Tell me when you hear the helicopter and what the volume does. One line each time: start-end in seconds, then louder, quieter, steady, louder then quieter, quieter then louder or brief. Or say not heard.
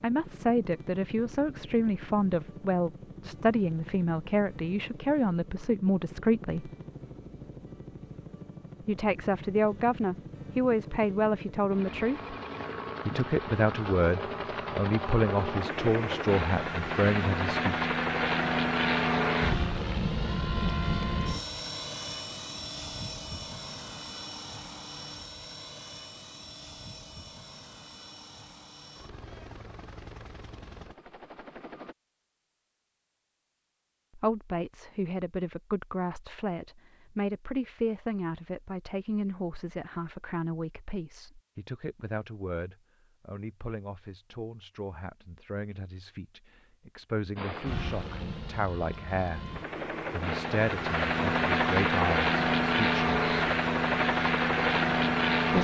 0.0-31.9 louder then quieter
47.4-55.5 louder.